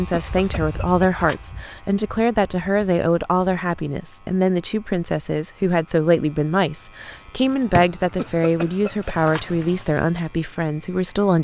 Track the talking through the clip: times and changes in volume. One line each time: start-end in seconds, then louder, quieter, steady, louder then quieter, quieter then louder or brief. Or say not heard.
0.0-11.4 steady.